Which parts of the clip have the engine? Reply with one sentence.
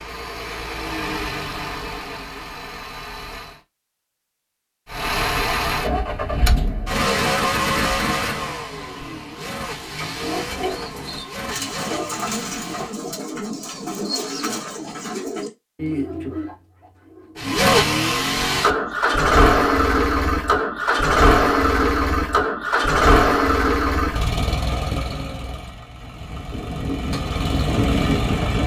You can hear the engine from 0.0 to 3.6 s, from 4.9 to 13.0 s and from 17.4 to 28.6 s.